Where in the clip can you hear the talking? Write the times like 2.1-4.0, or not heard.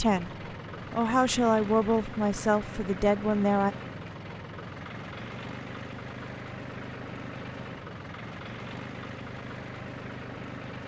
0.0-3.8.